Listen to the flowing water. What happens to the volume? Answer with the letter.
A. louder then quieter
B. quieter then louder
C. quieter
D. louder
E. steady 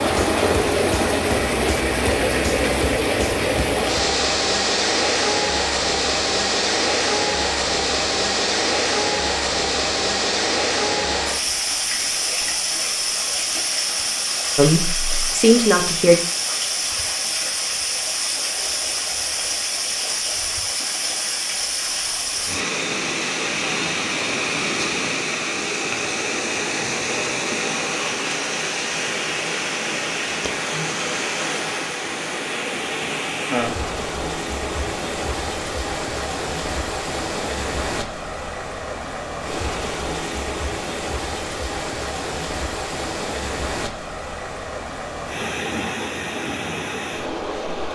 C.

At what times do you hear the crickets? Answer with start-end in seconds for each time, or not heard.
not heard.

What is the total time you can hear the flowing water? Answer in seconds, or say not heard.
48 s.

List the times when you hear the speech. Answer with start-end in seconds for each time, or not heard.
14.6-16.1.